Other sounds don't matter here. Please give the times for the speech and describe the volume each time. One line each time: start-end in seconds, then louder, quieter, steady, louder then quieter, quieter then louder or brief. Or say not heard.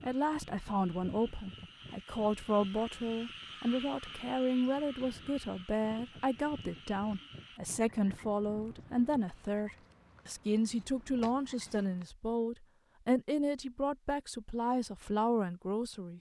0.0-16.1 steady.